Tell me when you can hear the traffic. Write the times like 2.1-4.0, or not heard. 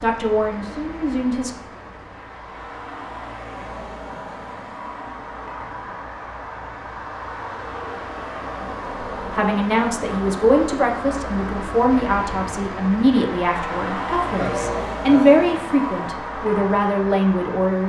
0.0-17.8.